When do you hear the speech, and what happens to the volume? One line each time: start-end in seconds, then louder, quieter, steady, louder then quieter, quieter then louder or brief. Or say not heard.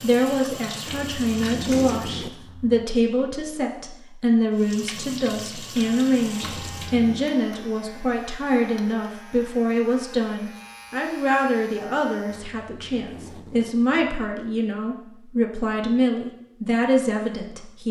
0.0-17.8 steady.